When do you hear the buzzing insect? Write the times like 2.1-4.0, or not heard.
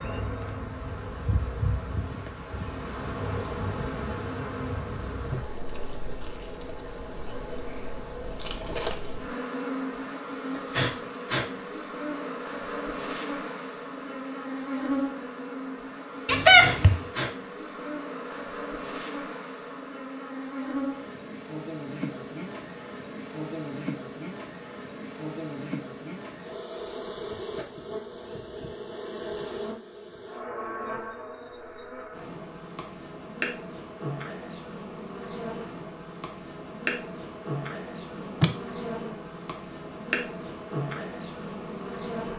0.0-42.3.